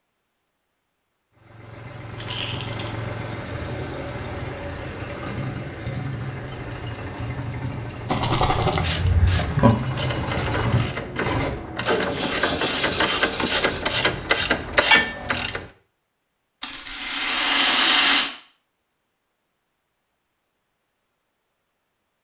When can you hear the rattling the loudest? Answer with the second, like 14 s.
18 s.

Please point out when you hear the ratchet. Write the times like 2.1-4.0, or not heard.
8.6-15.7.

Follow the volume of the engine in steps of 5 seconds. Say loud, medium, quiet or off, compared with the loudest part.
medium, loud, loud, off, off.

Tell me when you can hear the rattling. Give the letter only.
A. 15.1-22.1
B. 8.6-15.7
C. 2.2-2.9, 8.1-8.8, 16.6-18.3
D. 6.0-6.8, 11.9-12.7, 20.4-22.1
C.